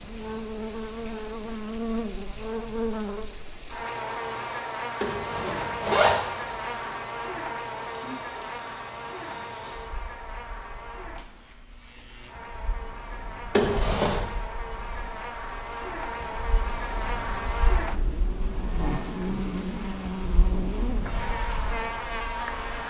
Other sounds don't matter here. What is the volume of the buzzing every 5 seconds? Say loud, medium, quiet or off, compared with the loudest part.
loud, loud, medium, loud, loud.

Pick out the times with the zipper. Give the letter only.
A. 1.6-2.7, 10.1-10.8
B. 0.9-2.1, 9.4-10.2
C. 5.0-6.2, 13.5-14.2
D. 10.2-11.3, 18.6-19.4
C.